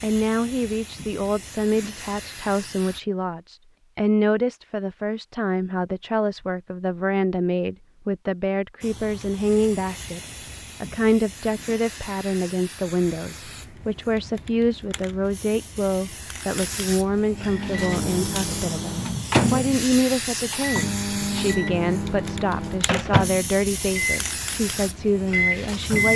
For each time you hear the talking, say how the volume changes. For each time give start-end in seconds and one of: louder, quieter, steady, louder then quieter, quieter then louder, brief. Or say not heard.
0.0-26.1 steady.